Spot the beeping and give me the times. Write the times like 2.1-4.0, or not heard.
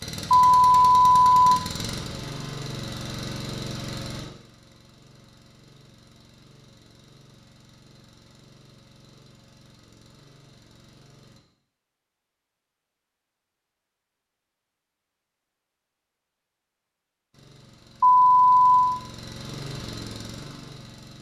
0.3-1.6, 18.0-19.0.